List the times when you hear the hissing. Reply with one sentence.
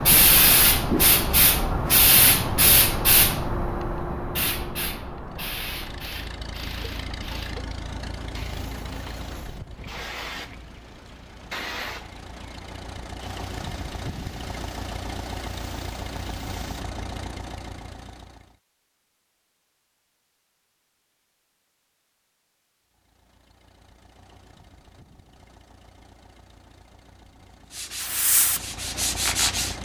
The hissing can be heard from 0.0 to 16.9 s and from 27.9 to 29.6 s.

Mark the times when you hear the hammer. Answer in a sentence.
The hammer can't be heard in this clip.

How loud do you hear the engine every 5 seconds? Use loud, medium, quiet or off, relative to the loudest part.
off, loud, loud, loud, quiet, medium.